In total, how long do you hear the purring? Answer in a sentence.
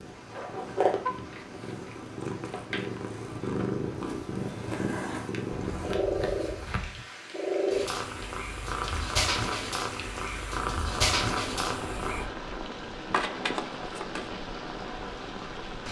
The purring can be heard for 12 seconds in total.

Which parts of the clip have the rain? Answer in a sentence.
You can hear the rain from 0.0 to 15.8 s.